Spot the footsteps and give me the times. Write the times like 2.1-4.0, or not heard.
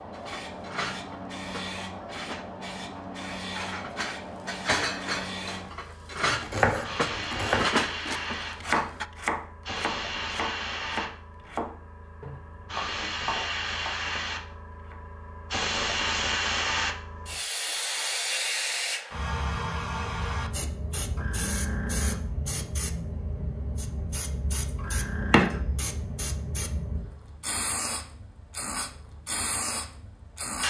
not heard.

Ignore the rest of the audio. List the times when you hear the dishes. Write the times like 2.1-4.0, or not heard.
0.1-9.1.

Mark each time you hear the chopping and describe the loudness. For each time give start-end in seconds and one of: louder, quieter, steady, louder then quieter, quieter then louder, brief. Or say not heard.
6.3-15.0 quieter.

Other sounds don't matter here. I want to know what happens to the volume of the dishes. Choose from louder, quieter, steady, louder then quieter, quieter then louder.
louder.